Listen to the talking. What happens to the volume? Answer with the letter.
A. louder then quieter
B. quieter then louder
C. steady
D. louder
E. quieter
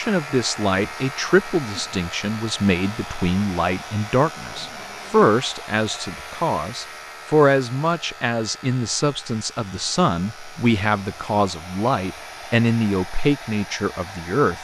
C.